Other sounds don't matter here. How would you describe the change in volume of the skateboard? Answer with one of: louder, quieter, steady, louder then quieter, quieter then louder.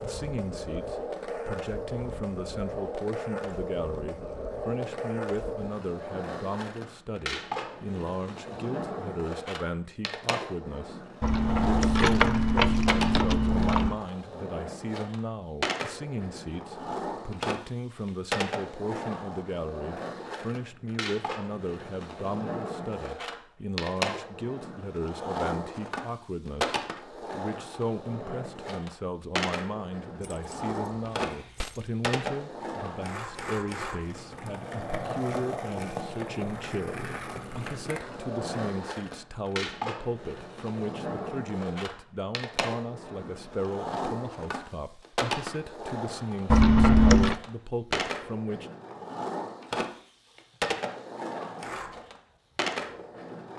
steady.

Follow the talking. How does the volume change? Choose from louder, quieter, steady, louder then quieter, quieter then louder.
steady.